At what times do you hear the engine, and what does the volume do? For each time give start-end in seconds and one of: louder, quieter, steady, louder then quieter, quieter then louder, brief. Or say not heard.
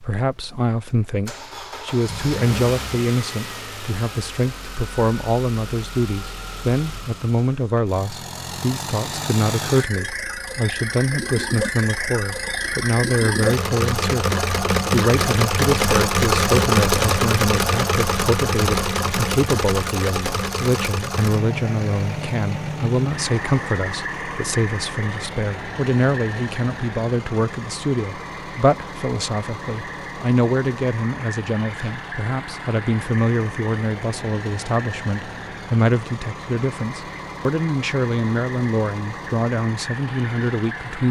0.0-41.0 louder then quieter.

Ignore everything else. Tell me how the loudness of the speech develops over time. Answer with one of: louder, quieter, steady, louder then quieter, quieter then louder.
steady.